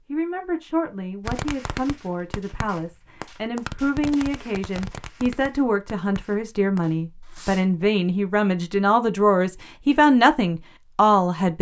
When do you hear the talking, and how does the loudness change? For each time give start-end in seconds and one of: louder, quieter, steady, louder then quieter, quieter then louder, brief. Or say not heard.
0.1-11.5 louder.